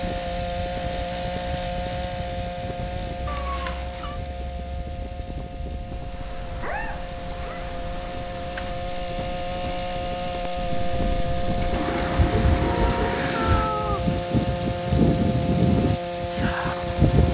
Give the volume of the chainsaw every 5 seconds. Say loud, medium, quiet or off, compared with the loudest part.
loud, medium, loud, loud.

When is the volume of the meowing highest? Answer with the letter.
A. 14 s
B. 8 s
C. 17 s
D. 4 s
A.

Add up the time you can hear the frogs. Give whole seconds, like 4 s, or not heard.
not heard.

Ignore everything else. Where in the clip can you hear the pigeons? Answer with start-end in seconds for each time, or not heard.
11.7-13.3.